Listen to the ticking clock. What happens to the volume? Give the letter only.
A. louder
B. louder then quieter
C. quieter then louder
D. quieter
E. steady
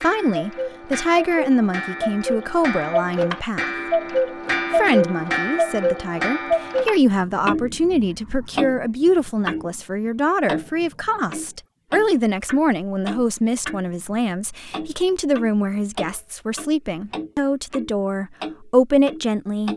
B.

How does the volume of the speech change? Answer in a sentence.
The loudness of the speech stays about the same.